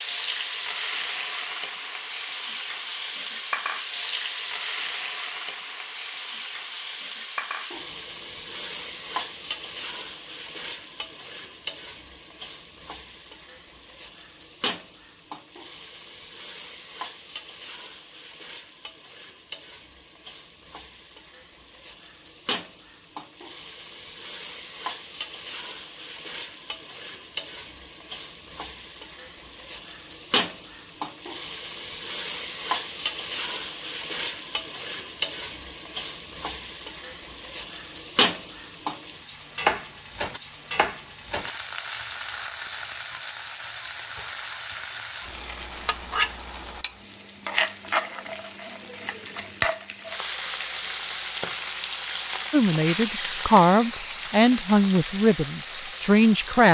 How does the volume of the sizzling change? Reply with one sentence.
The loudness of the sizzling goes down, then up.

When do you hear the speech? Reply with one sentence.
The speech can be heard from 52.5 to 56.6 s.